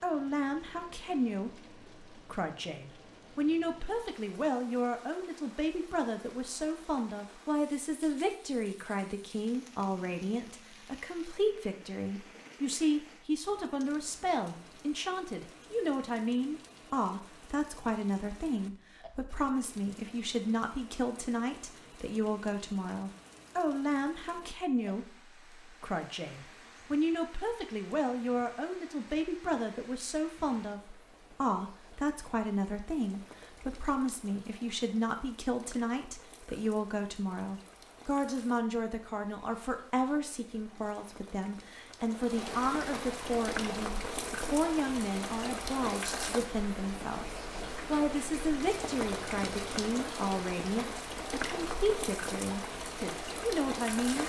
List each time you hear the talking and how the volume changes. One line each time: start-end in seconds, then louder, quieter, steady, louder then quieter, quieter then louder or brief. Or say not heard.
0.0-54.2 steady.